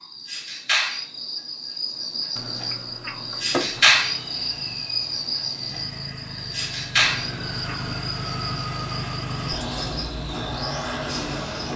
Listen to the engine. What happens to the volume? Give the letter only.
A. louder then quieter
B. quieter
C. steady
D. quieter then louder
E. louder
E.